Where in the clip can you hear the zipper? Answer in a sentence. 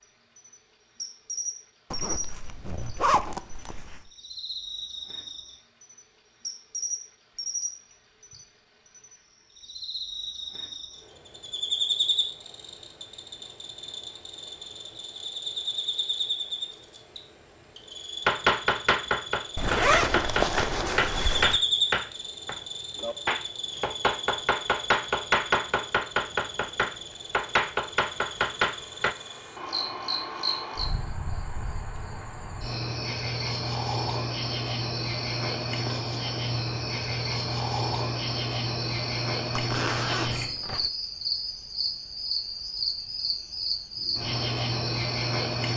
The zipper can be heard from 1.9 to 4.1 s, from 19.6 to 21.6 s and from 39.5 to 40.9 s.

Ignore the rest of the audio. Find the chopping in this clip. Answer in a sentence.
The chopping can be heard from 18.2 to 29.1 s.